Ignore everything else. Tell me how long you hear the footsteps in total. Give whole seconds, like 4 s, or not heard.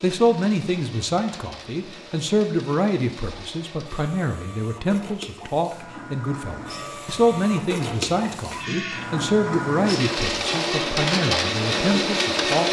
not heard.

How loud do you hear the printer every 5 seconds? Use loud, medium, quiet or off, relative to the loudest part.
quiet, medium, loud.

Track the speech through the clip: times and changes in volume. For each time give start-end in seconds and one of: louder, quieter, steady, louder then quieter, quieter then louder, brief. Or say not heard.
0.0-12.6 steady.